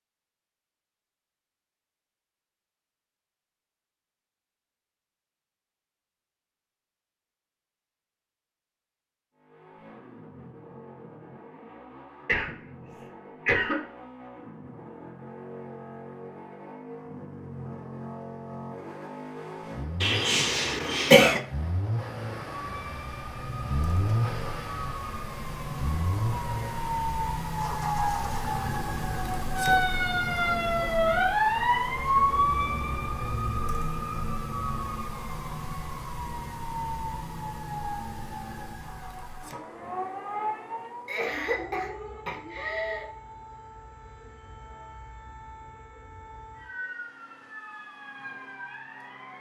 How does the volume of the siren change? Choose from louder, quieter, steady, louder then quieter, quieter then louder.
louder then quieter.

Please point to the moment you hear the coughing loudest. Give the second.
21 s.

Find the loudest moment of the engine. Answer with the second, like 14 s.
24 s.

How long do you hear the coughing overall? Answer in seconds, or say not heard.
5 s.